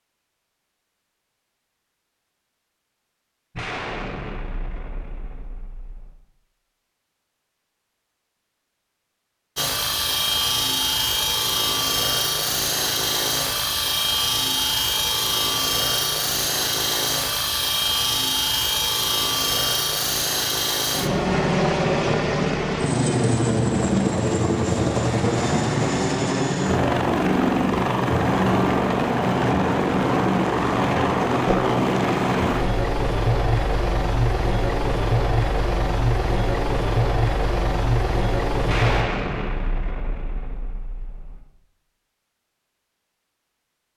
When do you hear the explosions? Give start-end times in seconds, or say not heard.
3.5-6.2, 38.6-41.4.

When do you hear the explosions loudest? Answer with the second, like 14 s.
39 s.